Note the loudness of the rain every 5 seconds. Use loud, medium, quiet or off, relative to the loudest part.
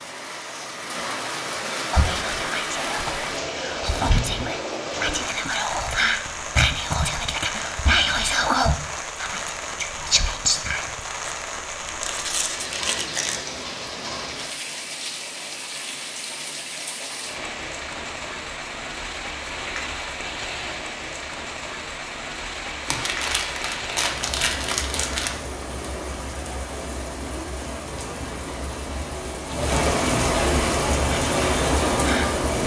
medium, medium, medium, medium, medium, medium, loud.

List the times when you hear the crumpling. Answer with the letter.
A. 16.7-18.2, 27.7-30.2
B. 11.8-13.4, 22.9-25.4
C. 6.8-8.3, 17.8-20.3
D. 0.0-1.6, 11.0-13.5
B.